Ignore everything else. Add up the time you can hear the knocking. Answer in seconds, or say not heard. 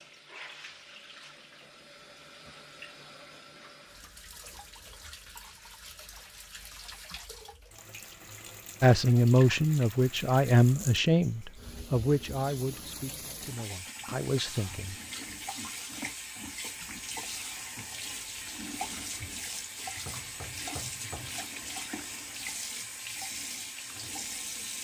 2 s.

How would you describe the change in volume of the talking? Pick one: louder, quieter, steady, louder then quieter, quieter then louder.
quieter.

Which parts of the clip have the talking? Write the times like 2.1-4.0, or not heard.
8.8-14.9.